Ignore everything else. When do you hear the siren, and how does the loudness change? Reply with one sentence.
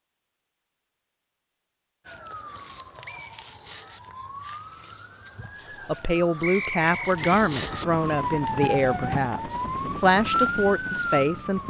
You can hear the siren from 2.0 to 11.6 s, getting louder.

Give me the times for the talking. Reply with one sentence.
You can hear the talking from 5.8 to 11.6 s.